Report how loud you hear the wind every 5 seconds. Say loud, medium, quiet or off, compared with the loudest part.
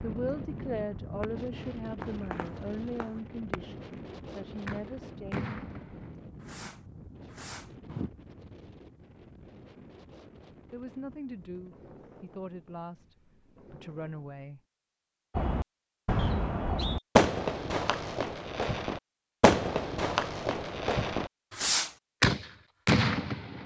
loud, medium, quiet, off, off.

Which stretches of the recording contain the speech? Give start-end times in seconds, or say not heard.
0.0-5.5, 10.7-14.6.